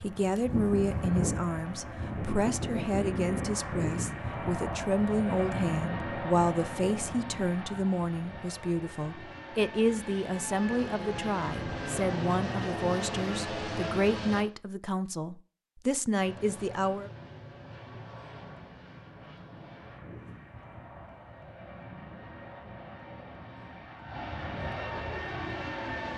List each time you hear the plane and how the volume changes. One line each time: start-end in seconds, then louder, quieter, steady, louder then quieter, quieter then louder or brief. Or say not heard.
0.0-14.4 quieter then louder
16.1-26.1 louder.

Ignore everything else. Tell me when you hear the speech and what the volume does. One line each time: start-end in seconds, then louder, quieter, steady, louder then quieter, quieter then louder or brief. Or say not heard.
0.0-17.1 steady.